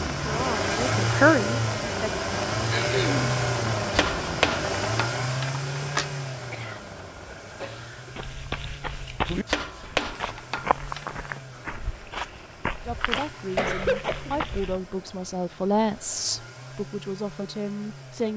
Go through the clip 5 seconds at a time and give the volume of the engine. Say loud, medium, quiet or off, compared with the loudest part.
loud, medium, quiet, quiet.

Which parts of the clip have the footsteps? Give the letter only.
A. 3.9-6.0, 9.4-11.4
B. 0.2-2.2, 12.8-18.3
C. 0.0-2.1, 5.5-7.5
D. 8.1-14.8
D.